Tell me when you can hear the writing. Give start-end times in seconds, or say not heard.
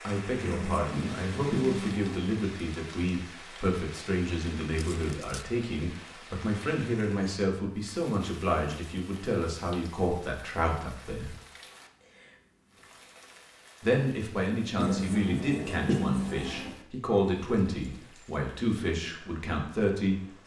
0.4-2.4, 14.8-16.7.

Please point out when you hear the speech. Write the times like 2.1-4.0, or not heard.
0.1-11.3, 13.8-20.4.